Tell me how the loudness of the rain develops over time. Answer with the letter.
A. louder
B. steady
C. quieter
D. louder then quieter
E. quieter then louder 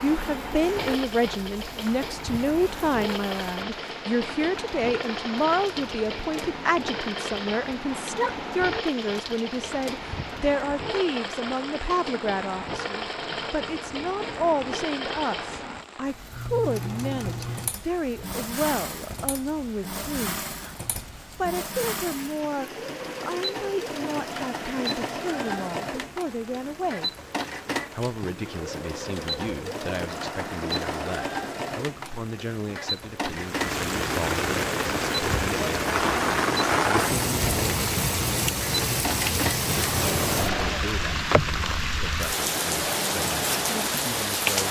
A.